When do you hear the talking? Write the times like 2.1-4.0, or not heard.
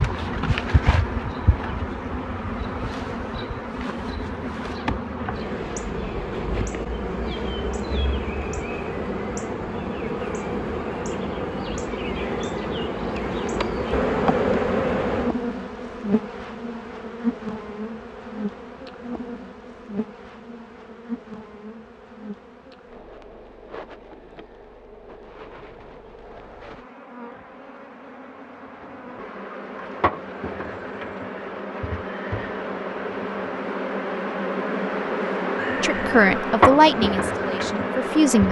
35.8-38.4.